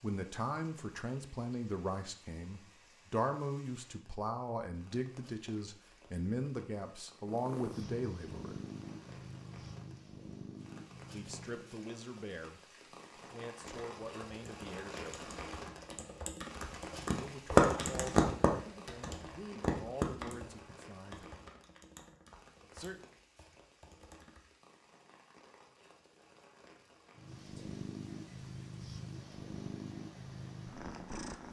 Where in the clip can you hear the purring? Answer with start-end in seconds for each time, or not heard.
7.2-11.8, 27.1-31.4.